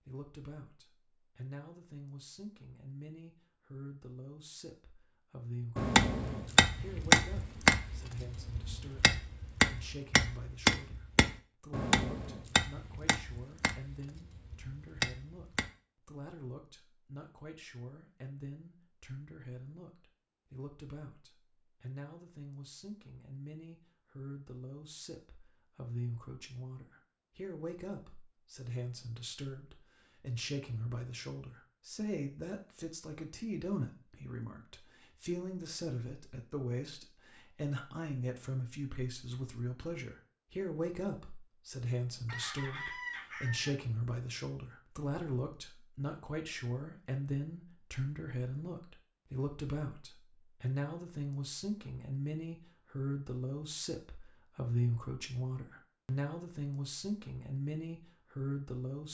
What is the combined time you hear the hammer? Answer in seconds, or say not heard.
10 s.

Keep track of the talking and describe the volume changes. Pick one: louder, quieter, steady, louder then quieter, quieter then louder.
louder.